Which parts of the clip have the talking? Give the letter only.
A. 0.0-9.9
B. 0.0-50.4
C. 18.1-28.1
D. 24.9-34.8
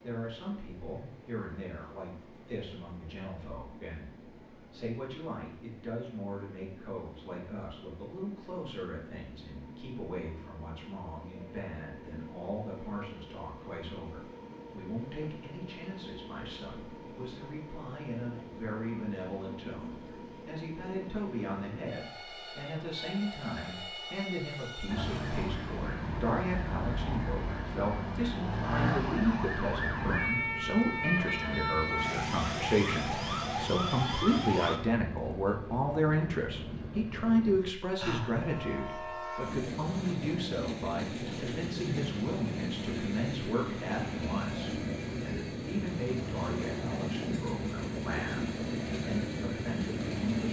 B.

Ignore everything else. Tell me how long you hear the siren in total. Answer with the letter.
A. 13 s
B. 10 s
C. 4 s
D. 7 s
B.